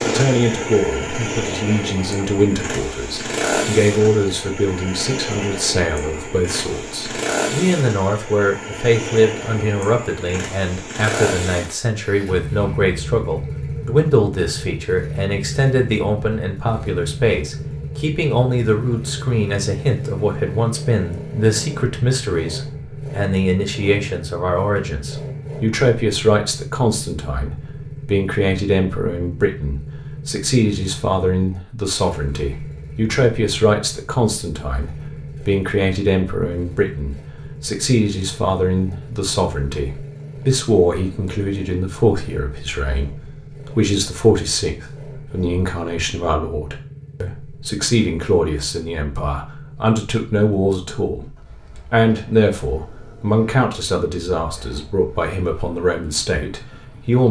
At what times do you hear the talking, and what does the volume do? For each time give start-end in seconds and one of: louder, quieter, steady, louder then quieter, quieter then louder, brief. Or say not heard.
0.1-57.2 steady.